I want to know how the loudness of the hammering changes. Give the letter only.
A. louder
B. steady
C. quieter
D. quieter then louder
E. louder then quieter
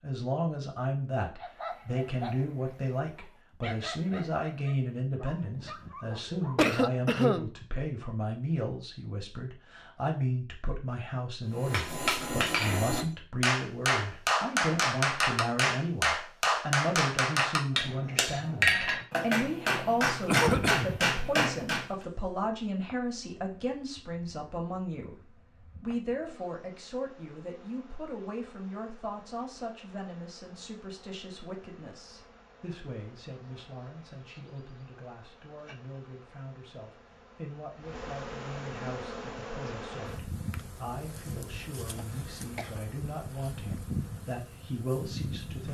B.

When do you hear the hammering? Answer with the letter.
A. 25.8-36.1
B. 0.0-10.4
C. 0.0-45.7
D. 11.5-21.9
D.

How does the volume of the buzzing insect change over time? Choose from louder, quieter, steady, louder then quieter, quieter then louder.
louder.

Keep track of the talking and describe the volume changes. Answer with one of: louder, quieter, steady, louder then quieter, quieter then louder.
quieter.